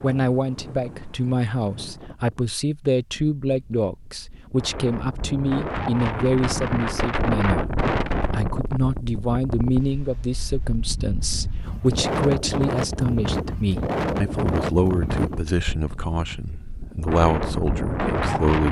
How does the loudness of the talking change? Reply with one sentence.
The loudness of the talking stays about the same.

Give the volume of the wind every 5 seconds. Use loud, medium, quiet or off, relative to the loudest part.
quiet, loud, loud, loud.